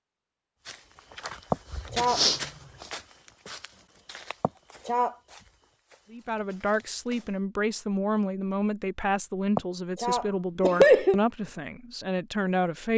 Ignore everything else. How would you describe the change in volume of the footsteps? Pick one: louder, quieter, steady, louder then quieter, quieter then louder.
quieter.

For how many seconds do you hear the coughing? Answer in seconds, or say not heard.
3 s.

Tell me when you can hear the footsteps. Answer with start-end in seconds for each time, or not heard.
0.7-7.3.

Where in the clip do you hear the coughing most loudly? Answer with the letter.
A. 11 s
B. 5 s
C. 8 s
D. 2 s
A.